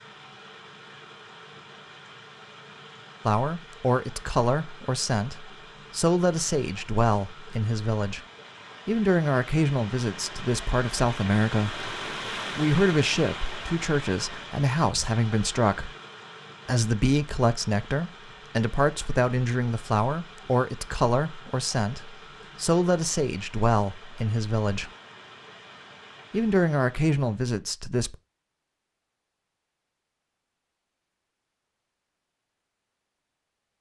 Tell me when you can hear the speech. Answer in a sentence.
You can hear the speech from 3.2 to 8.2 s, from 8.8 to 11.9 s, from 12.6 to 15.9 s, from 16.6 to 24.9 s and from 26.3 to 28.1 s.